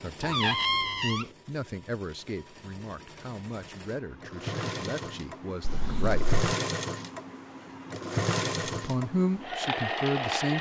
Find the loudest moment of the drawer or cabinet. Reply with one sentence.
The loudest moment of the drawer or cabinet is at 1 second.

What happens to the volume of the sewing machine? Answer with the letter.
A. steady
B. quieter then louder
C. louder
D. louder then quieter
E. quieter
C.